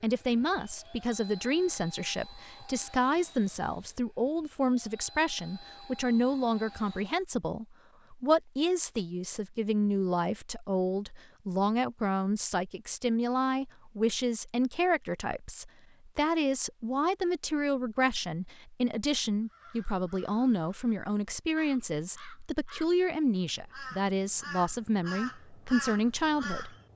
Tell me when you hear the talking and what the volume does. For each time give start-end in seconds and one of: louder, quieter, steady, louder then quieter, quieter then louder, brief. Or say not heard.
0.0-26.8 steady.